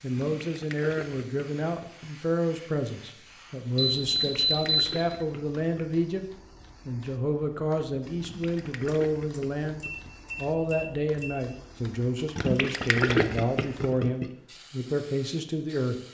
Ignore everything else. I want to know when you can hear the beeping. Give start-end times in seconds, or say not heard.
3.8-5.0, 8.8-11.4.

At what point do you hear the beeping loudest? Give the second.
5 s.